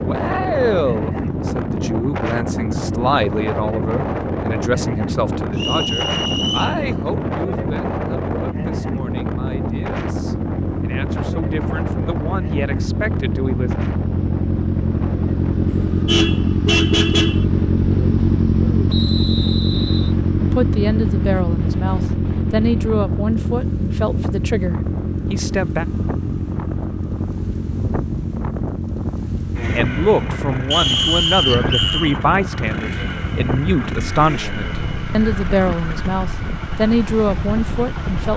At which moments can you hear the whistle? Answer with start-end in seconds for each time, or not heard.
5.5-6.8, 18.9-20.1, 30.7-32.1.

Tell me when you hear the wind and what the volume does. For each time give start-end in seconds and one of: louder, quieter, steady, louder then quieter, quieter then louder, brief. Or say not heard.
0.0-38.3 quieter then louder.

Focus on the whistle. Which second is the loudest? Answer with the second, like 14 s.
31 s.